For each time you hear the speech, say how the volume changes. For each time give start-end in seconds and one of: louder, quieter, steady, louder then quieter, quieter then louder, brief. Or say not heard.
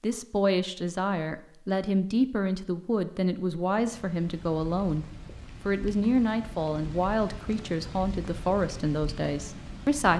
0.0-10.1 steady.